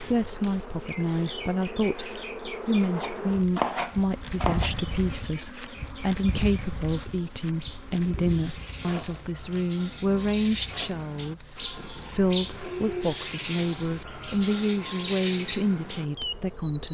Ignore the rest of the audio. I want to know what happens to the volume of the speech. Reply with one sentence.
The volume of the speech stays about the same.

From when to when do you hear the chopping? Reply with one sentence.
You can hear the chopping from 3.0 to 4.8 s.